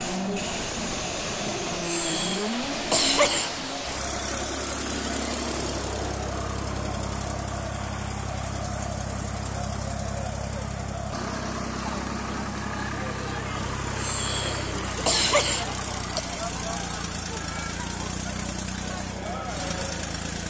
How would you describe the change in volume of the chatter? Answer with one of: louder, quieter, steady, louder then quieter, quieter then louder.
steady.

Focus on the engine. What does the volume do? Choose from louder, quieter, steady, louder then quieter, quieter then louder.
steady.